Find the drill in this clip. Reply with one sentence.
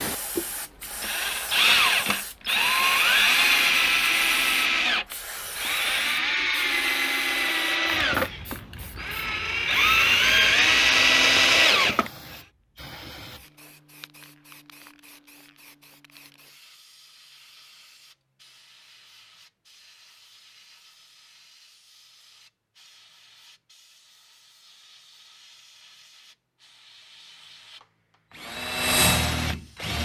You can hear the drill from 0.0 to 12.1 s and from 28.3 to 30.0 s.